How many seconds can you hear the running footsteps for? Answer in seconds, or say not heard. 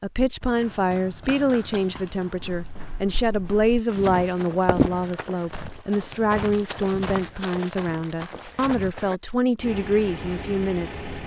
9 s.